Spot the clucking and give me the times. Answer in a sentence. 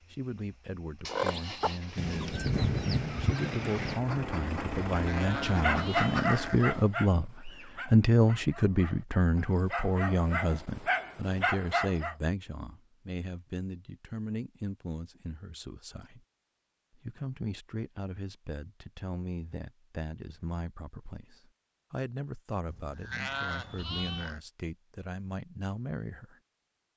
The clucking can be heard from 1.1 to 6.4 s.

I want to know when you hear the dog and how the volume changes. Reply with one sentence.
The dog can be heard from 5.5 to 12.2 s, getting quieter then louder.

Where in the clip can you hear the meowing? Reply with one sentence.
The meowing can't be heard in this clip.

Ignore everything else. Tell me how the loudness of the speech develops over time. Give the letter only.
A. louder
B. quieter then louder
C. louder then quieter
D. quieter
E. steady
C.